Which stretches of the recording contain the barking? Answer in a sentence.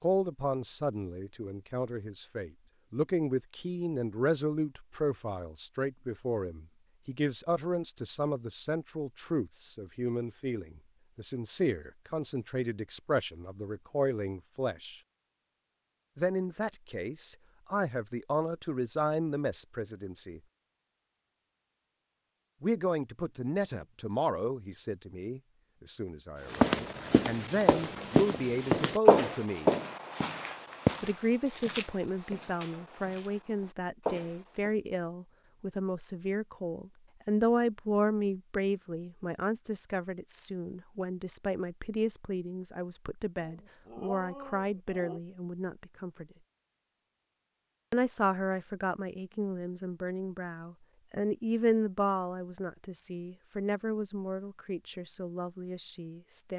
The barking can be heard from 43.4 to 45.2 s.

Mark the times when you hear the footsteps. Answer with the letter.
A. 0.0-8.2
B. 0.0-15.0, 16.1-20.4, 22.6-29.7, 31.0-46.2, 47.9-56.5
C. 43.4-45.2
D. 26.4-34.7
D.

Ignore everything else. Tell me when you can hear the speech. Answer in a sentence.
You can hear the speech from 0.0 to 15.0 s, from 16.1 to 20.4 s, from 22.6 to 29.7 s, from 31.0 to 46.2 s and from 47.9 to 56.5 s.